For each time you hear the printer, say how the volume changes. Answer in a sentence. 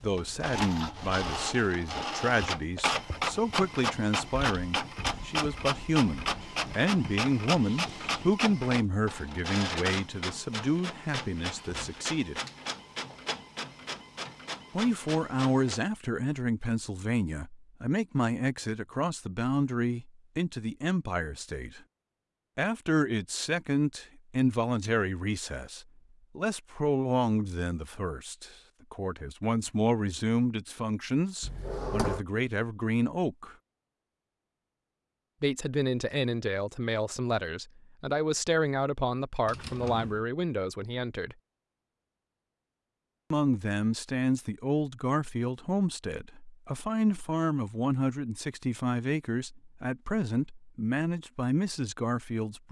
The printer can be heard from 0.0 to 15.8 s, getting quieter.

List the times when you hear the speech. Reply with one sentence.
The speech can be heard from 0.0 to 12.4 s, from 14.8 to 21.8 s, from 22.6 to 33.5 s, from 35.4 to 41.4 s and from 43.3 to 52.6 s.